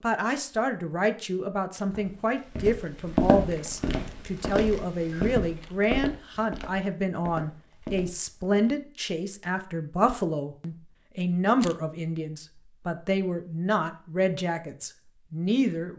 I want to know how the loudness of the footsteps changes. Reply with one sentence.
The loudness of the footsteps goes down.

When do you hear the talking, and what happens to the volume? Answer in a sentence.
The talking can be heard from 0.0 to 15.9 s, at a steady volume.